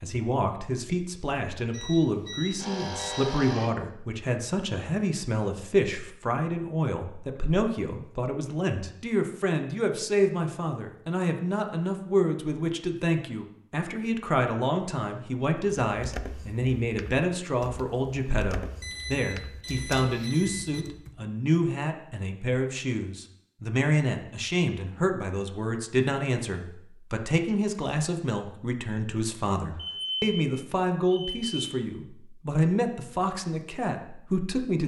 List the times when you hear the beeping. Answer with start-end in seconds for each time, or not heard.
1.7-3.7, 18.8-20.9, 29.8-31.6.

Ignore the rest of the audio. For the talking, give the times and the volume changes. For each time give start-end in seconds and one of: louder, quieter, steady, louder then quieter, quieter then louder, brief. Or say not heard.
0.0-34.8 steady.